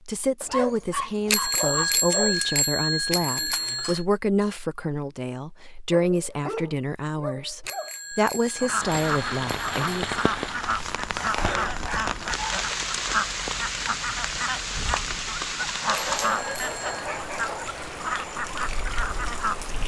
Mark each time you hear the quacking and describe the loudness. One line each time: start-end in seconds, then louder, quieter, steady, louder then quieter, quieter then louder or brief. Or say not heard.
8.6-19.6 steady.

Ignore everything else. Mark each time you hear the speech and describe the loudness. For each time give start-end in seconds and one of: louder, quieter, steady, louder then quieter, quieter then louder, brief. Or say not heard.
0.1-10.1 steady.